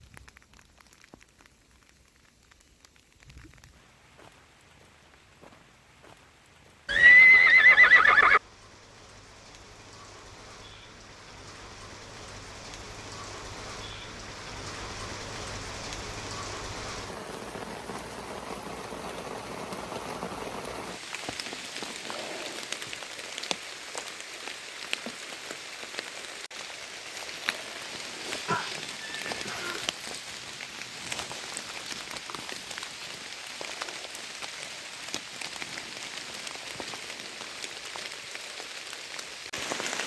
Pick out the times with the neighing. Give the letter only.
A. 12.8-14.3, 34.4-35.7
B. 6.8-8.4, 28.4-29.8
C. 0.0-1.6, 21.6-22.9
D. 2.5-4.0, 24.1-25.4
B.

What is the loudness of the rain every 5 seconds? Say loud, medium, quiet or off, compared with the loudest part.
quiet, quiet, medium, loud, loud, loud, loud, loud.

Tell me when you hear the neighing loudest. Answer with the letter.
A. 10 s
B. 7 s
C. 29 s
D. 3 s
B.